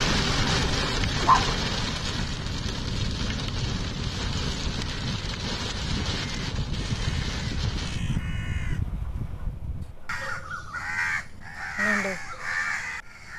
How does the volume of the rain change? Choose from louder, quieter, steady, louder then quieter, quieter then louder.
quieter.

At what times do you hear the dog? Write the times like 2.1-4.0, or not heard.
1.2-1.9.